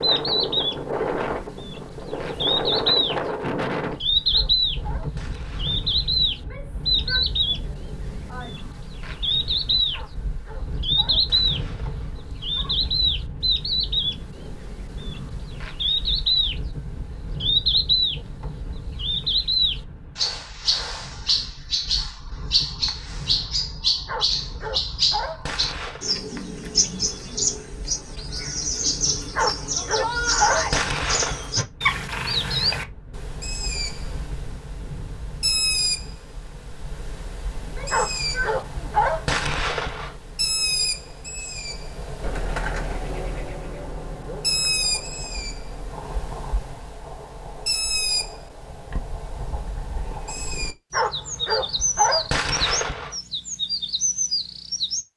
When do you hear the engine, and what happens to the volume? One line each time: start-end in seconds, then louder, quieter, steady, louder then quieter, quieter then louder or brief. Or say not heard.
42.2-46.4 quieter.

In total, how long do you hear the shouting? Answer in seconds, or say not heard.
5 s.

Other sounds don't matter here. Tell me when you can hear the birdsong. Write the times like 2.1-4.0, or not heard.
0.0-55.0.